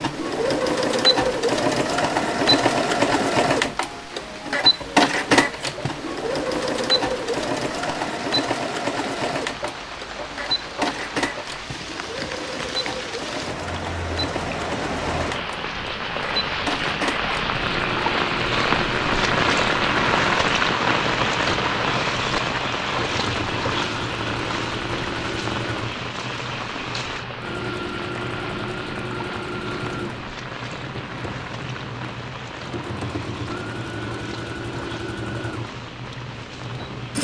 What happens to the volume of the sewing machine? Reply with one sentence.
The loudness of the sewing machine goes down.